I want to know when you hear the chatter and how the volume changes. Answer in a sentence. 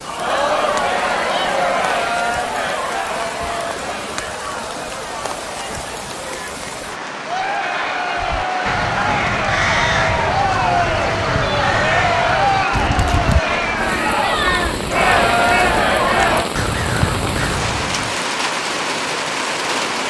The chatter can be heard from 0.0 to 16.5 s, getting quieter then louder.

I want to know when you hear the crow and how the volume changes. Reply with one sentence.
The crow can be heard from 8.2 to 18.2 s, at a steady volume.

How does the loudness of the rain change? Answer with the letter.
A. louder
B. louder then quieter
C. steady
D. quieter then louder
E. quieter
A.